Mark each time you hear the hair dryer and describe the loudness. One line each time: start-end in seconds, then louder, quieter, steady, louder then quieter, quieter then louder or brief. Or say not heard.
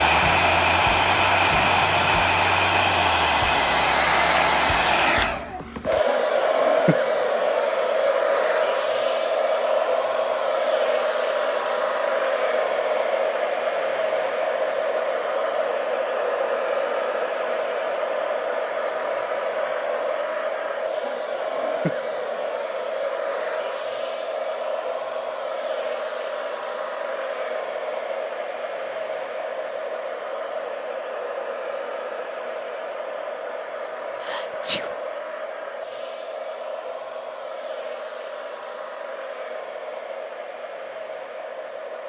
0.0-42.0 quieter.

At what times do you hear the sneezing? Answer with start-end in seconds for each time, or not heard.
34.2-34.9.